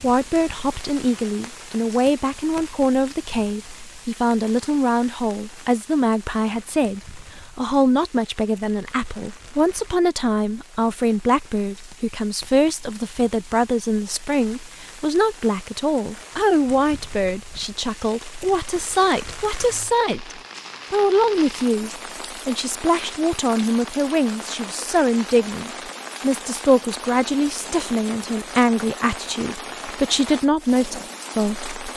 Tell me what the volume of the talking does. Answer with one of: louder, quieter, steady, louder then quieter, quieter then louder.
steady.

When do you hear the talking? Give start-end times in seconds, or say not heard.
0.0-31.9.